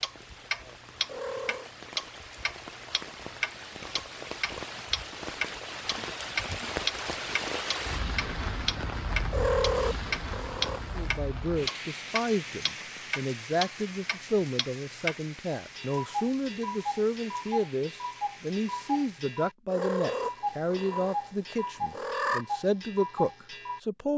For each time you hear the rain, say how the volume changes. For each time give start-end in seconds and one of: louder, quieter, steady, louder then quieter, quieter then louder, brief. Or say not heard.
0.0-19.4 louder then quieter.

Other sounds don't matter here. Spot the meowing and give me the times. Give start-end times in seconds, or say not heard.
1.1-1.7, 9.3-10.9, 19.7-22.4.